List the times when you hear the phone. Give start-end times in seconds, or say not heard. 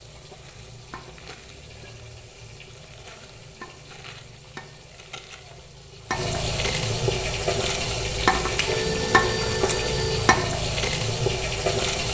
8.7-10.4.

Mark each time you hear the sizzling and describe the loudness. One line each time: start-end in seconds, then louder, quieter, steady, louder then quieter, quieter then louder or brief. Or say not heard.
0.0-12.0 louder.